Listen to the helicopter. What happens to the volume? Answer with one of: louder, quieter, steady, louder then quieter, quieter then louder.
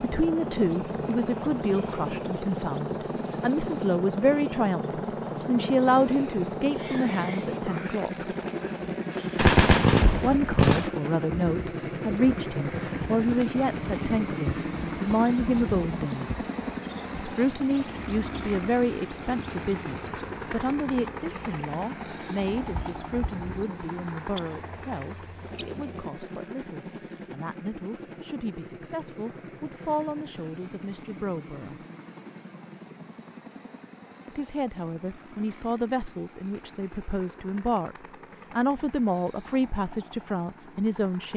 quieter.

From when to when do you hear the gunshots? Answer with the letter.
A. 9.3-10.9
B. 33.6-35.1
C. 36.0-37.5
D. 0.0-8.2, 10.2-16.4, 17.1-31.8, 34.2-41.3
A.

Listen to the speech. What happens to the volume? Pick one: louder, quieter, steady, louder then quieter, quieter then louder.
quieter then louder.